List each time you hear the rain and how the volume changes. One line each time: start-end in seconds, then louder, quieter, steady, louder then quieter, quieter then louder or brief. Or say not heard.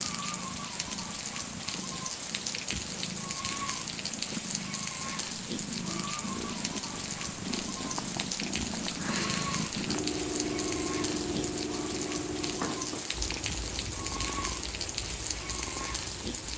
0.0-16.5 steady.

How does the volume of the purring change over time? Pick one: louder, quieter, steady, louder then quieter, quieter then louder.
louder then quieter.